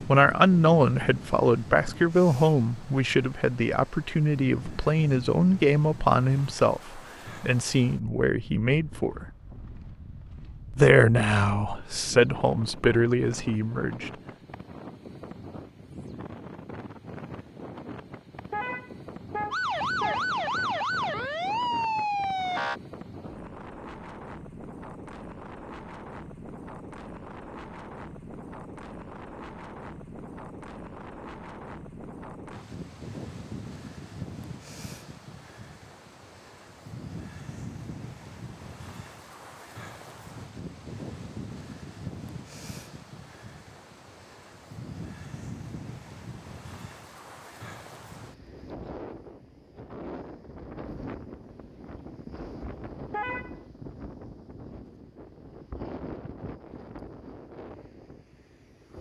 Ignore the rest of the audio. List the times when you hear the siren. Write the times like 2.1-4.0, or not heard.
19.5-22.8.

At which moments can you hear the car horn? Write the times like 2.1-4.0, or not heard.
18.5-20.2, 53.1-53.5.